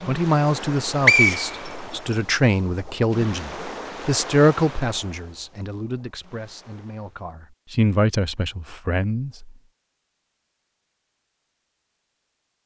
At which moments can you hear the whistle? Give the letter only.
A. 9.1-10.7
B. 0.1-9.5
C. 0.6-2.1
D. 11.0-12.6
C.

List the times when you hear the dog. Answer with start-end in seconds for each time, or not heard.
not heard.